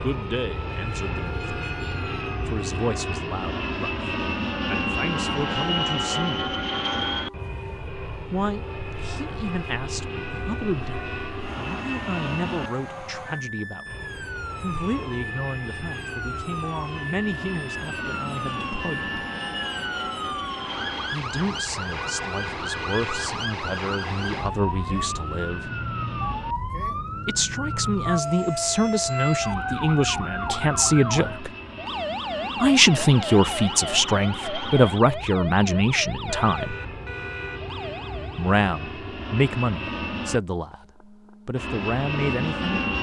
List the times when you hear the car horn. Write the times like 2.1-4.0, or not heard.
10.2-11.4, 21.9-23.4, 36.2-37.7.